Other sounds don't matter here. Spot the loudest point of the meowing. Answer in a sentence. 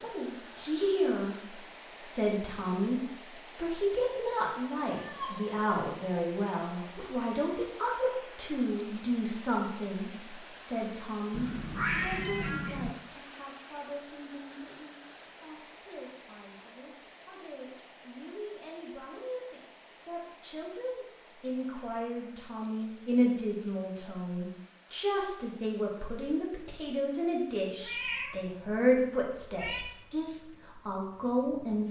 The loudest moment of the meowing is at 12 seconds.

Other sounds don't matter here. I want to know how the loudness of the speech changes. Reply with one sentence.
The volume of the speech goes down, then up.